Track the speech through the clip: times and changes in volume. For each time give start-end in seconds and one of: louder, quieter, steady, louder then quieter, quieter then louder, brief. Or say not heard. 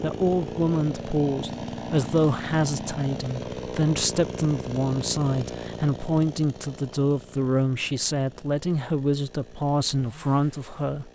0.0-11.0 steady.